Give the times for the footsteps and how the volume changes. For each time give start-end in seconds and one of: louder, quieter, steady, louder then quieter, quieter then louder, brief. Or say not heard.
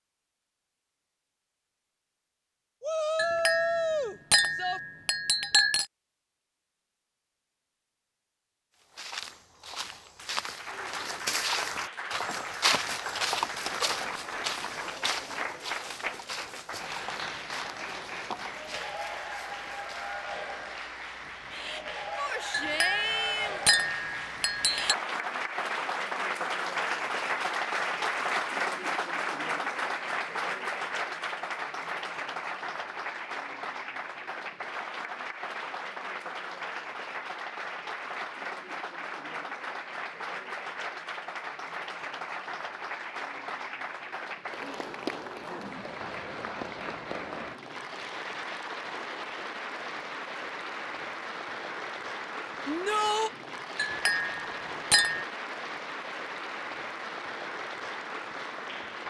8.8-20.2 louder then quieter.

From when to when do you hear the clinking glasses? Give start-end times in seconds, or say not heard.
3.1-5.8, 22.5-24.9, 53.8-55.2.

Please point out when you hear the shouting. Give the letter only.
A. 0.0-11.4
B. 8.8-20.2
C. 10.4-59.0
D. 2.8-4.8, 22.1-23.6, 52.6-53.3
D.